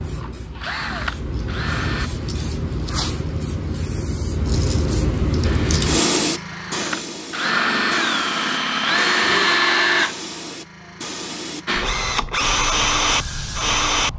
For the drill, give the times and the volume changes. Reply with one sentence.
The drill can be heard briefly from 0.1 to 2.1 s; from 5.4 to 10.2 s, getting louder; and briefly from 11.7 to 14.1 s.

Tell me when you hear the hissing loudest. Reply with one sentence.
The volume of the hissing peaks at 6 seconds.